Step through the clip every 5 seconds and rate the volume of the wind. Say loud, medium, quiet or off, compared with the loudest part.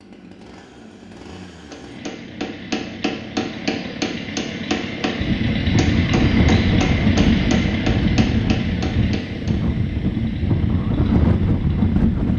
off, loud, loud.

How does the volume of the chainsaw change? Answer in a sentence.
The loudness of the chainsaw goes up, then down.